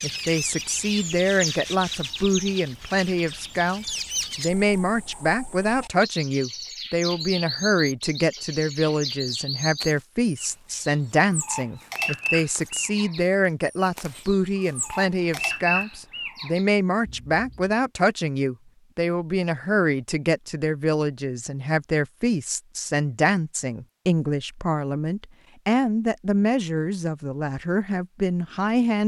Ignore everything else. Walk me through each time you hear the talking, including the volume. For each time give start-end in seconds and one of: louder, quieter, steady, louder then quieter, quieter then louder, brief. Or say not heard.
0.0-29.0 steady.